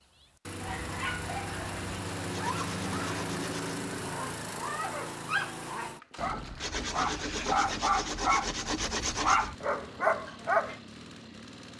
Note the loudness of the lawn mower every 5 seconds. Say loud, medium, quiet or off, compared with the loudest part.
loud, medium, medium.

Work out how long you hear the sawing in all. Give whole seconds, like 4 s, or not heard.
4 s.